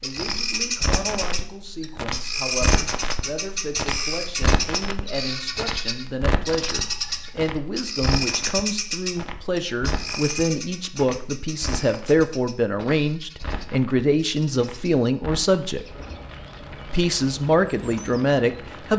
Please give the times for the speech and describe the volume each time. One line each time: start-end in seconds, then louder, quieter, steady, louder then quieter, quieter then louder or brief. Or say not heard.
0.0-15.9 louder
16.9-18.9 brief.